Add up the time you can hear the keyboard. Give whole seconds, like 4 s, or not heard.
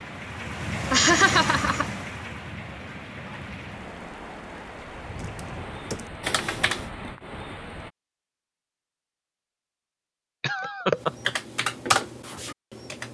4 s.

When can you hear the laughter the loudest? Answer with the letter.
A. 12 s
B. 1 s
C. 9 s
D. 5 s
B.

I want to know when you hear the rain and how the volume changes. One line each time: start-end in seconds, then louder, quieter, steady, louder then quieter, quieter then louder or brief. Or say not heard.
0.0-7.9 quieter.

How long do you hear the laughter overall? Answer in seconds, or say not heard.
2 s.